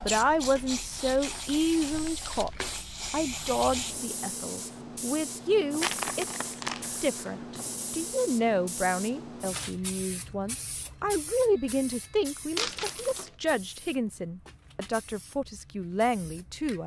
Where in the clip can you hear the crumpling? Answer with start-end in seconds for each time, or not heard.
0.9-2.8, 5.8-7.6, 12.6-13.3.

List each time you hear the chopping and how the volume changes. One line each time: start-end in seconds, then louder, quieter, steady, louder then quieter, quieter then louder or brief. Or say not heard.
not heard.